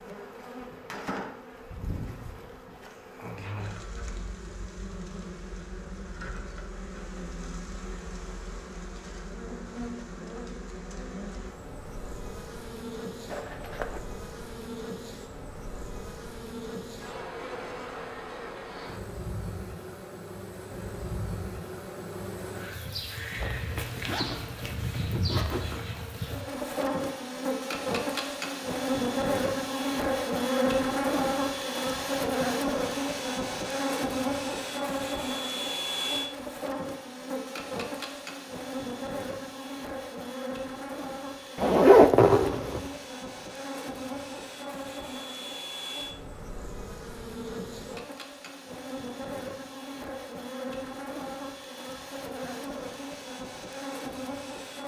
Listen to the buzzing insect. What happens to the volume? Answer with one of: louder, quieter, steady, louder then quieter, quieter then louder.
louder then quieter.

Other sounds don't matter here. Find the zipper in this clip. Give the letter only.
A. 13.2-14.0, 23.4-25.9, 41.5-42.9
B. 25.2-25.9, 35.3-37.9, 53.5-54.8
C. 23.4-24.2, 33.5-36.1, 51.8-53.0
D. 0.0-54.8
A.